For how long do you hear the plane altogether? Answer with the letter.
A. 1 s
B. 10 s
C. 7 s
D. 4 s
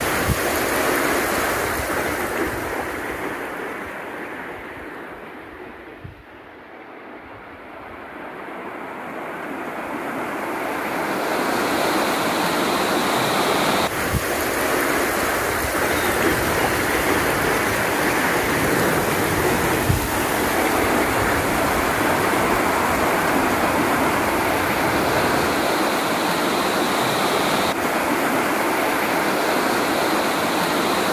B.